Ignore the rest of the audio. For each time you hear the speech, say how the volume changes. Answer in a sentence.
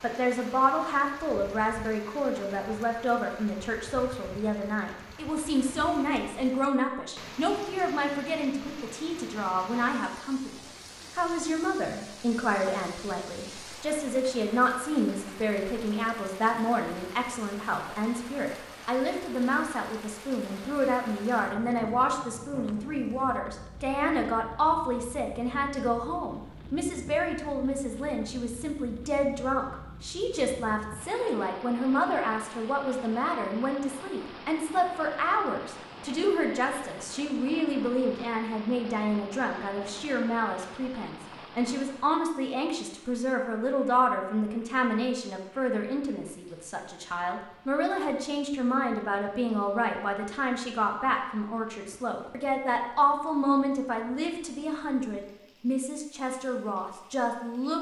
The speech can be heard from 0.0 to 57.7 s, at a steady volume.